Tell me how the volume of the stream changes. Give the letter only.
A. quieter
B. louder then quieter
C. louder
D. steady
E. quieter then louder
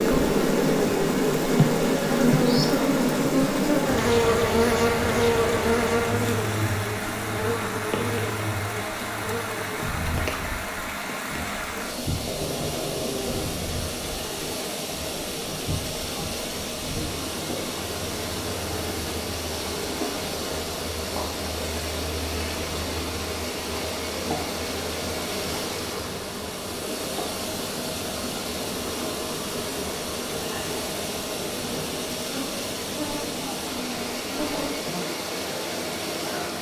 D.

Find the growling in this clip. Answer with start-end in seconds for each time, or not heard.
12.2-13.6.